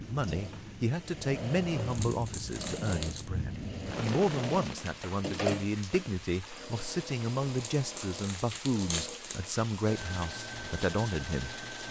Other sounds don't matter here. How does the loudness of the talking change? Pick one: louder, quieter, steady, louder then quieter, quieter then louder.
steady.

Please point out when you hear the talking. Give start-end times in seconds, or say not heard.
0.0-11.7.